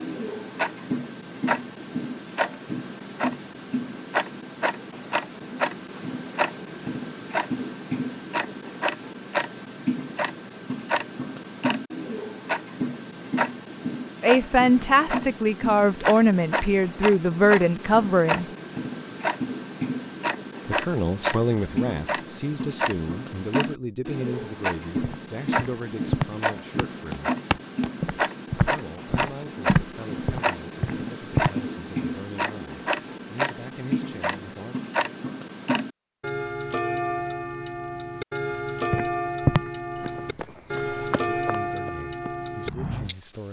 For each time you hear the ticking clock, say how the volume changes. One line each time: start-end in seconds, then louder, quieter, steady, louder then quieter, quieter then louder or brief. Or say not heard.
0.0-43.4 steady.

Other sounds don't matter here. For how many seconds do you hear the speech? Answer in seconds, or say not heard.
19 s.